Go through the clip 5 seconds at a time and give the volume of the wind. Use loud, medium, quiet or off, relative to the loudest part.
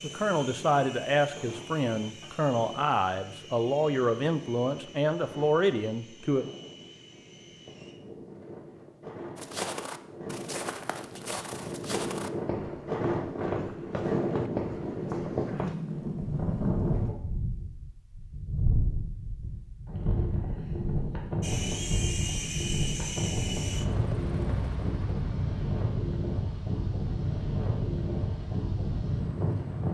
quiet, quiet, loud, loud, loud, loud.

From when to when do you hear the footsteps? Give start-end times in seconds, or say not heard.
9.3-15.8.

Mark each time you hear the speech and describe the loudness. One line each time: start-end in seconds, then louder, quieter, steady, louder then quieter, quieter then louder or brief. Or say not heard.
0.0-6.5 steady.